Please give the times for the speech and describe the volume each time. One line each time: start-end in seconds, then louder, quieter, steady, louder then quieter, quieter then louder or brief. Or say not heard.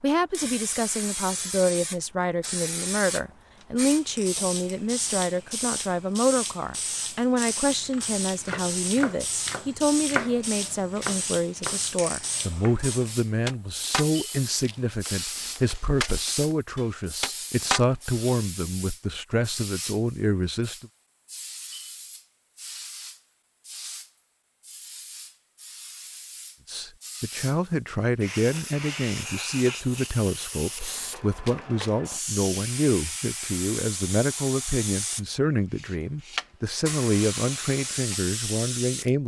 0.0-20.9 steady
26.6-39.2 steady.